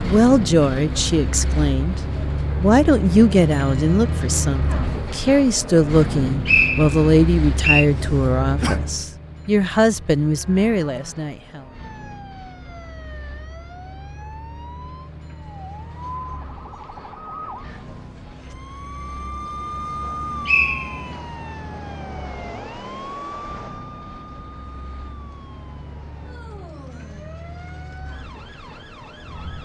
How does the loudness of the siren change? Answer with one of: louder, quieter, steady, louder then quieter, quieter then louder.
louder then quieter.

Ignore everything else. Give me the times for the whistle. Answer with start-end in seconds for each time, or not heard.
6.5-7.8, 20.4-21.2.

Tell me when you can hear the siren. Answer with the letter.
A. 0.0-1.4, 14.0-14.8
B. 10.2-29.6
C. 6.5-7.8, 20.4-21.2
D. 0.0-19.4
B.